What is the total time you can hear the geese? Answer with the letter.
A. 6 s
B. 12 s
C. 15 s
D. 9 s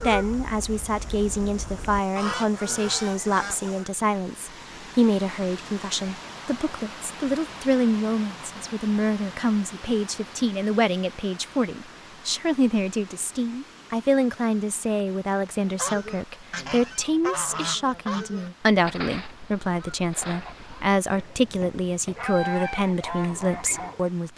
B.